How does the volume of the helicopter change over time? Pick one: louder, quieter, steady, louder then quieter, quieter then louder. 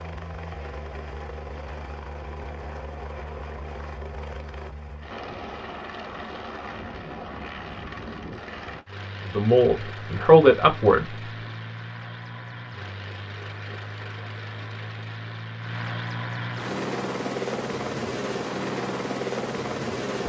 louder.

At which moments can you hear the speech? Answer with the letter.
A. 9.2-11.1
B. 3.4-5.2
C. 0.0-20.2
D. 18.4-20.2
A.